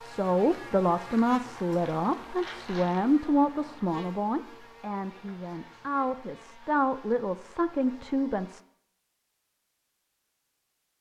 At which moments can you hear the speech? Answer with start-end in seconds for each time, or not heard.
0.0-8.6.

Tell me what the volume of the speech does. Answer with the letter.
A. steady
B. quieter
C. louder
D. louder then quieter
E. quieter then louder
E.